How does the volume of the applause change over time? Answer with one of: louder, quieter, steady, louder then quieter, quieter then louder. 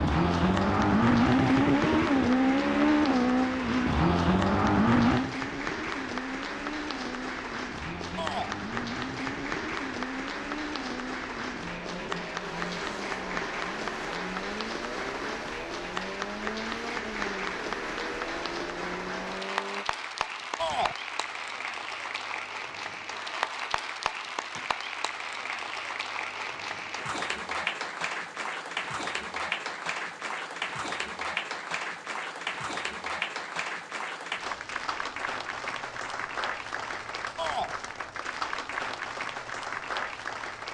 steady.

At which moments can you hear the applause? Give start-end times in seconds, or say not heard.
0.0-40.6.